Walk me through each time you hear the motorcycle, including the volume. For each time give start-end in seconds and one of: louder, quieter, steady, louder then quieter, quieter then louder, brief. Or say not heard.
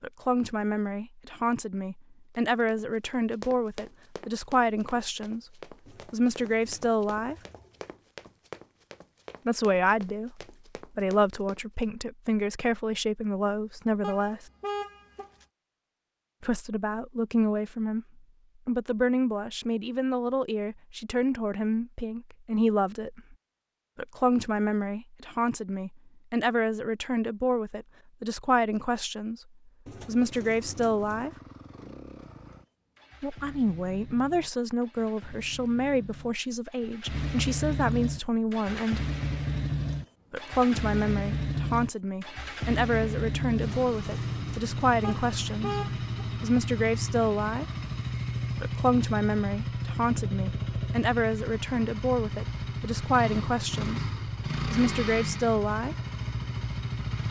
29.9-57.2 louder.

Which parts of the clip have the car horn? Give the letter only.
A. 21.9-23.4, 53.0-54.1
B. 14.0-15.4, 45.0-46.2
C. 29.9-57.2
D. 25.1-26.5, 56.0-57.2
B.